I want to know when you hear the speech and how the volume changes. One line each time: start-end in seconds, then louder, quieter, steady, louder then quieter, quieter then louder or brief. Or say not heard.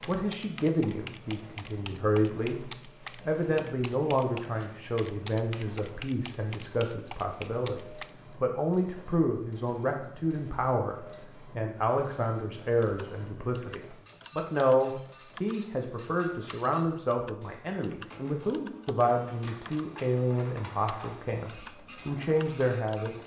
0.1-23.2 steady.